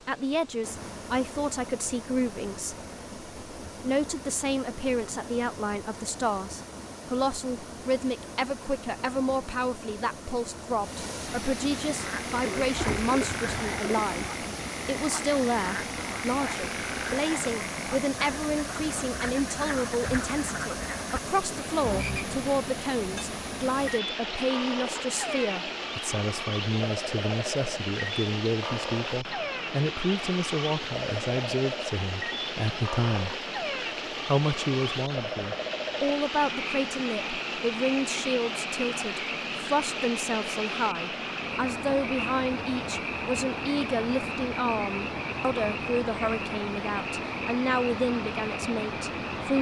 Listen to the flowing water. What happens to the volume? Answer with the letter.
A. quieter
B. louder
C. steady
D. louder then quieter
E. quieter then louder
B.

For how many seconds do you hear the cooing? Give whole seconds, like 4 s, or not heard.
2 s.